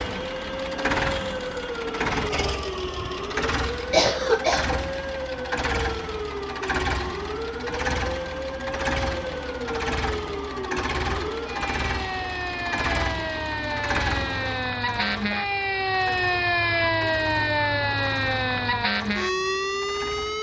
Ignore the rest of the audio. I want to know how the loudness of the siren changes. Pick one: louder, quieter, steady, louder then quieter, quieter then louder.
louder.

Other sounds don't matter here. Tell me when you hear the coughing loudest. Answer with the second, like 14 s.
4 s.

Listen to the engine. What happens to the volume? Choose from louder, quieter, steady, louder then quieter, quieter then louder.
quieter.